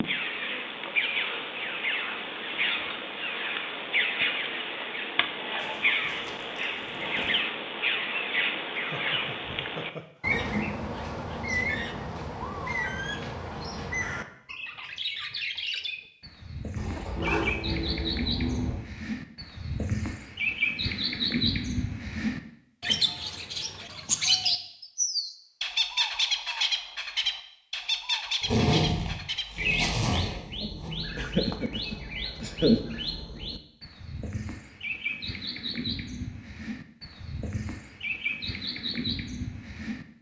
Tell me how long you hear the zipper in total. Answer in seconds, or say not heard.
6 s.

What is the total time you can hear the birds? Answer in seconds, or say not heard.
40 s.